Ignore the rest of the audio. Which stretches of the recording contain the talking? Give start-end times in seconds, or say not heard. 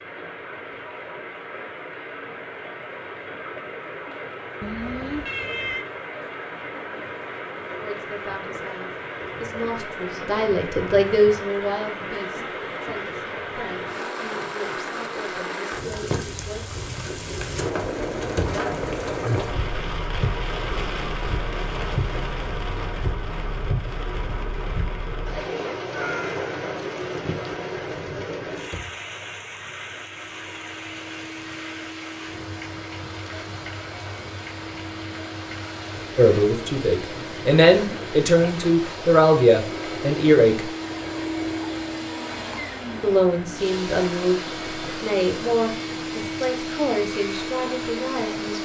7.8-16.8, 36.1-40.7, 43.0-48.5.